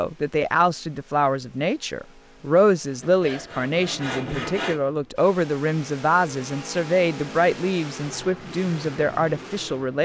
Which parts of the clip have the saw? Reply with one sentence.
You can hear the saw from 3.0 to 4.8 s.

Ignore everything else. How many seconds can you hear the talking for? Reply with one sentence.
The talking can be heard for 10 seconds in total.